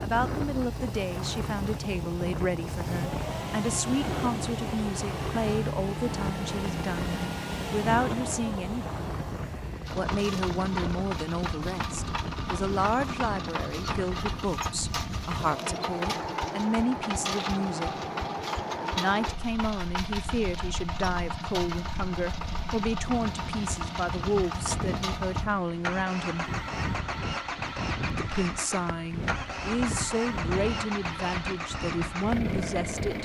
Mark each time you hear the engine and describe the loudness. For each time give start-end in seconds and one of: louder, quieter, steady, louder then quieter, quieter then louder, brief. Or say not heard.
0.0-33.2 steady.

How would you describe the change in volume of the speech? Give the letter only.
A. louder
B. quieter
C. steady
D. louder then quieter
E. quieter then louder
C.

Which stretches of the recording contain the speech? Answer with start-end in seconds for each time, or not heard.
0.0-9.0, 9.9-17.9, 18.9-26.5, 28.1-33.2.